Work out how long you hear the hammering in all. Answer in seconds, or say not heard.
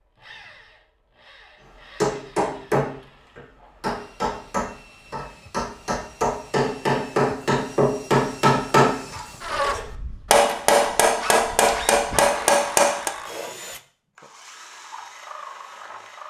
11 s.